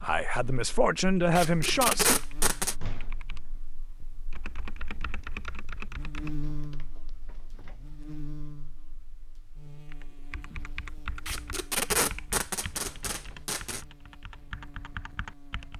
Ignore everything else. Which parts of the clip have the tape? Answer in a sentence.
The tape can be heard from 1.4 to 2.8 s and from 11.2 to 13.8 s.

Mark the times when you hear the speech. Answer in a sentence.
The speech can be heard from 0.0 to 2.1 s.